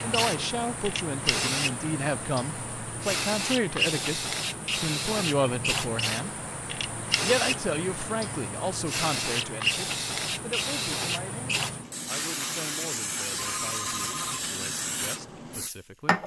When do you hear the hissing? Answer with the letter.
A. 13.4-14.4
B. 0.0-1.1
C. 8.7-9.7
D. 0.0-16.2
D.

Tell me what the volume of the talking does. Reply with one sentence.
The loudness of the talking goes down.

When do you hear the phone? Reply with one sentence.
You can hear the phone from 13.4 to 14.4 s.